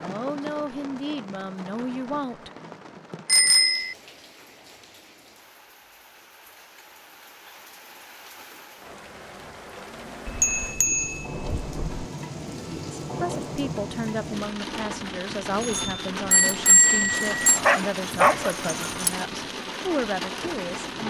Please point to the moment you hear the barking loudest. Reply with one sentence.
The loudest moment of the barking is at 18 seconds.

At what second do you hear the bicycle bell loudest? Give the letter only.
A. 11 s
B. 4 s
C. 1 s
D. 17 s
D.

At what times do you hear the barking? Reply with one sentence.
The barking can be heard from 17.1 to 19.2 s.